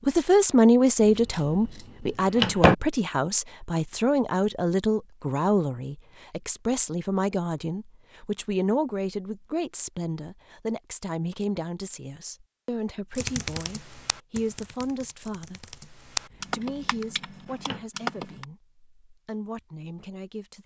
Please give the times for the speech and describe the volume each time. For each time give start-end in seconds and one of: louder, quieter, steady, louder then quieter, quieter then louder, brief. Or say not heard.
0.1-20.6 quieter.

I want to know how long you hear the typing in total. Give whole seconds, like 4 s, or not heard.
5 s.